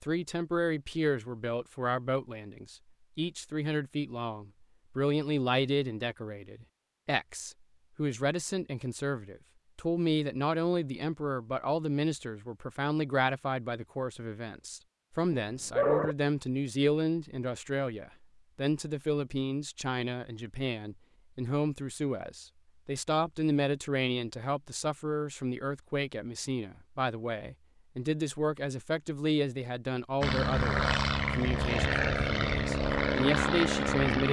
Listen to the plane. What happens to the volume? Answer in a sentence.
The volume of the plane stays about the same.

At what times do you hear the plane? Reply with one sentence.
You can hear the plane from 30.2 to 34.2 s.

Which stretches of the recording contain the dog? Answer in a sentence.
You can hear the dog from 15.3 to 16.1 s.